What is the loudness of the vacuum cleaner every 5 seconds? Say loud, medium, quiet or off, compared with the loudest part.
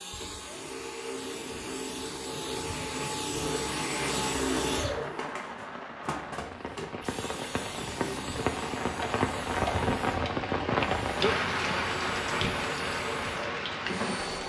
loud, medium, medium.